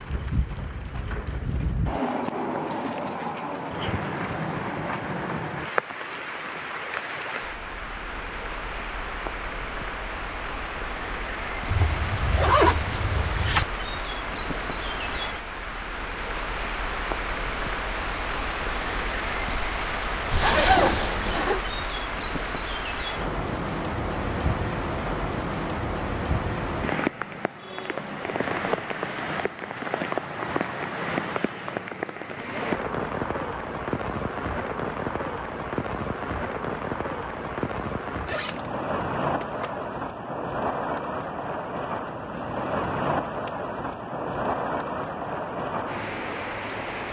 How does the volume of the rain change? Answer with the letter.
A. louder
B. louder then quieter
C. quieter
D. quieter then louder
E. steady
E.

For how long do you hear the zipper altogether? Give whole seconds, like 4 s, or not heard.
5 s.